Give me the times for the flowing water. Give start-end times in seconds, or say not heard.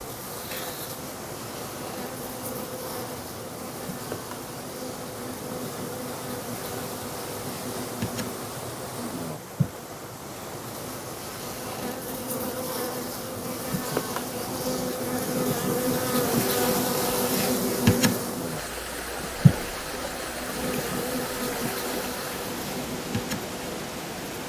0.0-24.4.